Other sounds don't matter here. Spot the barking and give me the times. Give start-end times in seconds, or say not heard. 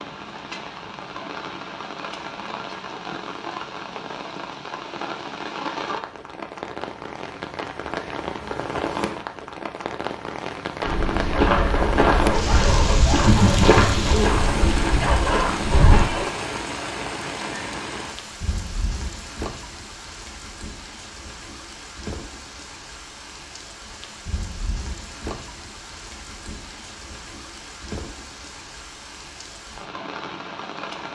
11.2-16.4.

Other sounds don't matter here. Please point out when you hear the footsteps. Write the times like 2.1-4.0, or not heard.
10.8-16.1.